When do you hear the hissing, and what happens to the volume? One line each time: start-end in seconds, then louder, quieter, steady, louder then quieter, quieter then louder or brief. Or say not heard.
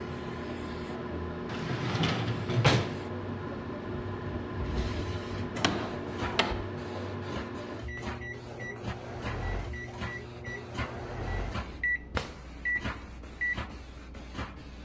0.0-14.8 steady.